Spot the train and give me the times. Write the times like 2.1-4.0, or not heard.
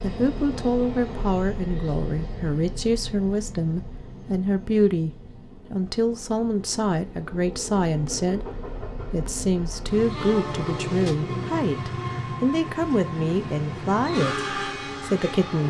0.0-15.6.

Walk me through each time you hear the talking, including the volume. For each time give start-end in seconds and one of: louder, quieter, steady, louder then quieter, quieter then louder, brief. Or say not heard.
0.0-15.6 steady.